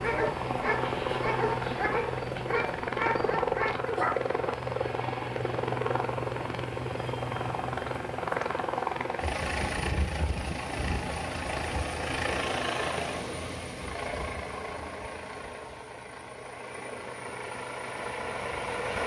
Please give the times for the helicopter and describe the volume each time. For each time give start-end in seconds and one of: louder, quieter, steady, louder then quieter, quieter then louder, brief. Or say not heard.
0.0-19.0 quieter.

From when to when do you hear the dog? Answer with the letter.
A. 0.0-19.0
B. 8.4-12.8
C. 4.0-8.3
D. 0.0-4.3
D.